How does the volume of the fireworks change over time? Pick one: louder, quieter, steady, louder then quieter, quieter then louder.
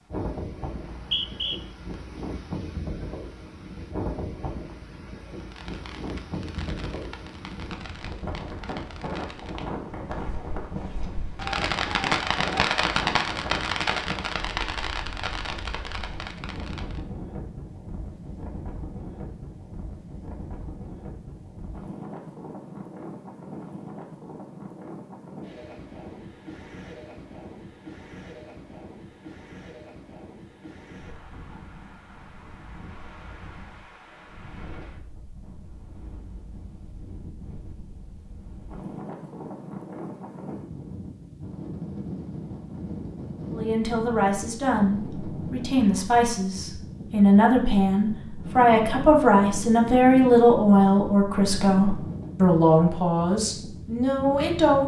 louder then quieter.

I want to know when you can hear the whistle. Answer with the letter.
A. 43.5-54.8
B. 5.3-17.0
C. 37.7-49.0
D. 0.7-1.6
D.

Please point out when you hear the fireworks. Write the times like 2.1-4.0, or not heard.
5.3-17.0.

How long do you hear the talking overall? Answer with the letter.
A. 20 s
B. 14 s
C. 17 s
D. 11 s
D.